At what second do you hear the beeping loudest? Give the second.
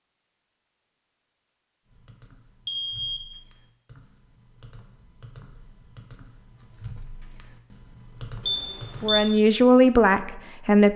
9 s.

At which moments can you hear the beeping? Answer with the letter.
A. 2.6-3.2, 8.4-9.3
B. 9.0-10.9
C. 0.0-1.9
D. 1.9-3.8
A.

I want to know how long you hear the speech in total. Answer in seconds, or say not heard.
2 s.